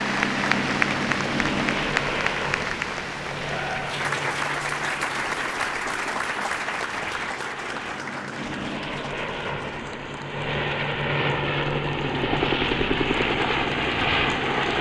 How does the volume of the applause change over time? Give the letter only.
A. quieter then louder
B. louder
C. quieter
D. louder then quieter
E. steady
C.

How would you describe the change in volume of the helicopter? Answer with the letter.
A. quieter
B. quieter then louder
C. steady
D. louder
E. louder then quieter
B.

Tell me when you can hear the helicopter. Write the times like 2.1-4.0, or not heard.
0.0-14.7.